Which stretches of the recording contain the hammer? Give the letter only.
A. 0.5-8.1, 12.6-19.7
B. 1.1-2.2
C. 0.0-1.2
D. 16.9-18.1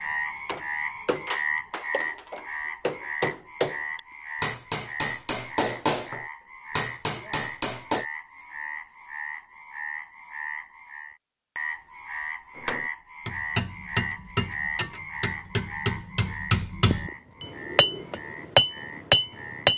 A.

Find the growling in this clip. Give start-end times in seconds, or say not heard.
not heard.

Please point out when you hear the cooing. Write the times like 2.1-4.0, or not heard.
16.9-18.1.